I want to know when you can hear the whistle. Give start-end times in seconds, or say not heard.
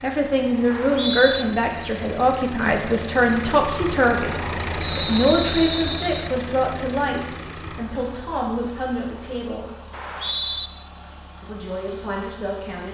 0.7-1.4, 4.8-6.3, 9.9-10.7.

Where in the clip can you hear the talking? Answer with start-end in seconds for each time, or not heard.
0.0-9.7, 11.4-12.9.